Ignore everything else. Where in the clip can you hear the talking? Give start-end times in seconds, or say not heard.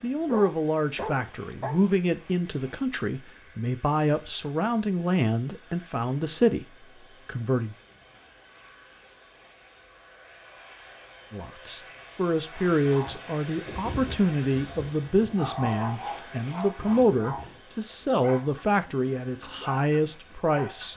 0.0-7.8, 11.3-20.9.